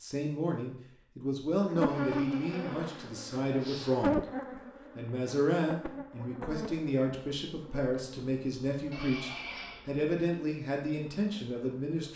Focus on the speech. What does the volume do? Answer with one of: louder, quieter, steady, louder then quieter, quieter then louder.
steady.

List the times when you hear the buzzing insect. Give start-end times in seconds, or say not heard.
1.6-12.1.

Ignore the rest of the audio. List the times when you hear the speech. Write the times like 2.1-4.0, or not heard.
0.0-4.2, 5.0-12.1.